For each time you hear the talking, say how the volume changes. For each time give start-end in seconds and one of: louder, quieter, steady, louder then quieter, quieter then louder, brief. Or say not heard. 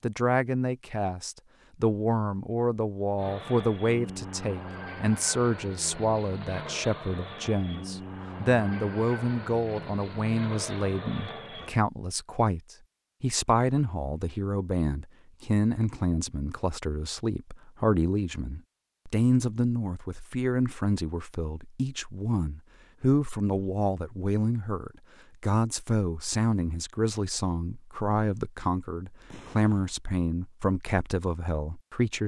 0.0-32.2 steady.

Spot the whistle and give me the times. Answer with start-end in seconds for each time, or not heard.
not heard.